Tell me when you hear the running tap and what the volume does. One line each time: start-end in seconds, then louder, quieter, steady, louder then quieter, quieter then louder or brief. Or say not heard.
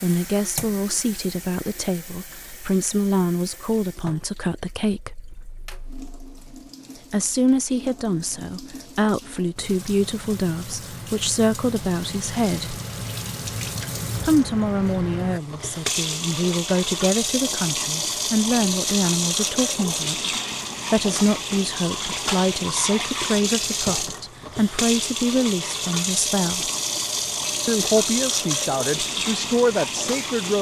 0.0-30.5 louder.